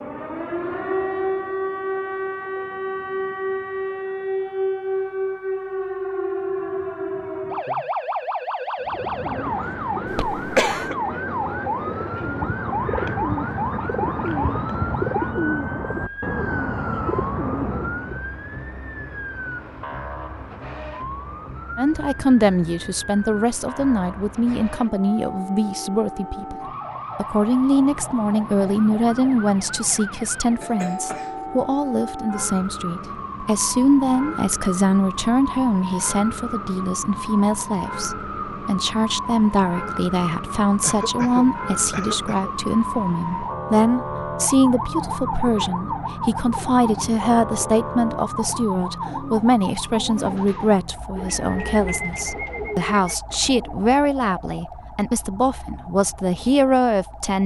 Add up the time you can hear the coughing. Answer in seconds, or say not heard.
3 s.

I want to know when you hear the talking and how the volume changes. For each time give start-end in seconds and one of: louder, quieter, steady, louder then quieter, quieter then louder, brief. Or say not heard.
21.8-57.4 steady.